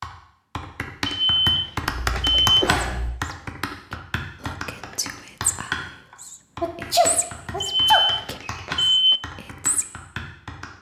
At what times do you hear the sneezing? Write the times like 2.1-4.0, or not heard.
1.8-3.1, 6.6-8.6.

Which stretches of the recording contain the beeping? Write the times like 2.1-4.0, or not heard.
1.1-2.5, 7.6-9.2.